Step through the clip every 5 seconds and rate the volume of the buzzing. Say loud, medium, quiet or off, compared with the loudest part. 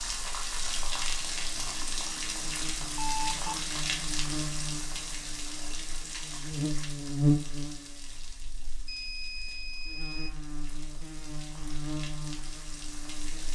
medium, loud, medium.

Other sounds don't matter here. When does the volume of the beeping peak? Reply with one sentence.
The volume of the beeping peaks at 3 seconds.